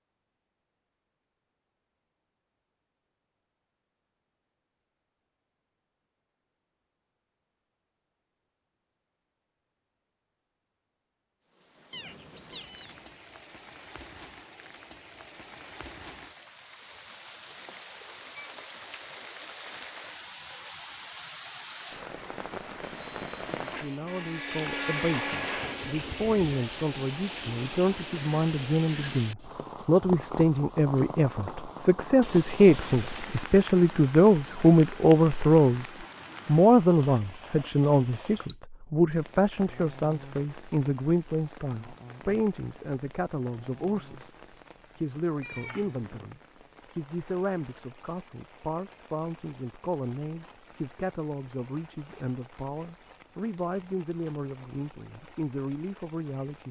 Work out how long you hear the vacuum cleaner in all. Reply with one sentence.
The vacuum cleaner can be heard for 3 seconds in total.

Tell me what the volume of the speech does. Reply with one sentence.
The volume of the speech goes up, then down.